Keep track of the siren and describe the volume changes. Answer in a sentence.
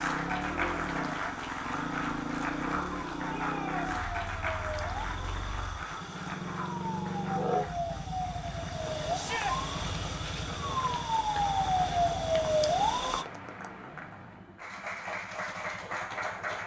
The volume of the siren goes up.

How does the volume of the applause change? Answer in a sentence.
The loudness of the applause goes down, then up.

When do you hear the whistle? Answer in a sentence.
The whistle can't be heard in this clip.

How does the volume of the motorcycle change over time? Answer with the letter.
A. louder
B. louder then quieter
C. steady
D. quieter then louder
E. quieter
E.